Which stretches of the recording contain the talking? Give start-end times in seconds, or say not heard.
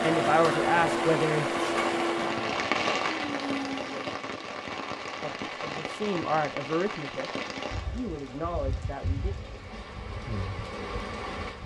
0.0-1.5, 5.2-7.3, 7.9-9.3.